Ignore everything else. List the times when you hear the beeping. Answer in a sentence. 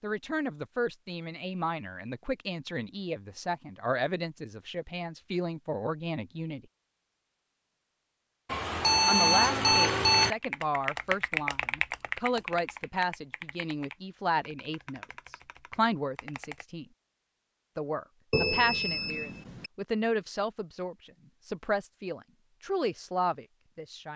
The beeping can be heard from 8.4 to 10.3 s and from 18.3 to 19.7 s.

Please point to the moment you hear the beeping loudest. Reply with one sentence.
The volume of the beeping peaks at 9 seconds.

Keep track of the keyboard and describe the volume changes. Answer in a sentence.
The volume of the keyboard goes down.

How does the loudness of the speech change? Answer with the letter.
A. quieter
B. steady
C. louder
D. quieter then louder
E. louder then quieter
B.